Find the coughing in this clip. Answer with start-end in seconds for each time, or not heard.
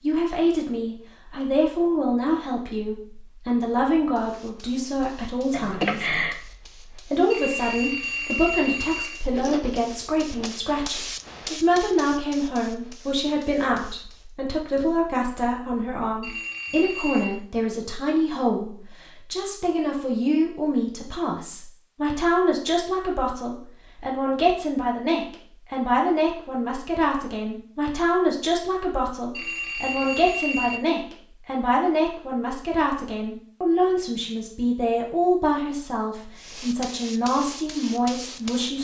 5.5-6.3.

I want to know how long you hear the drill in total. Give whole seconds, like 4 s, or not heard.
not heard.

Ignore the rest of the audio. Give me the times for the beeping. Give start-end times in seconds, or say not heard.
7.3-9.2, 16.2-17.4, 29.3-30.8.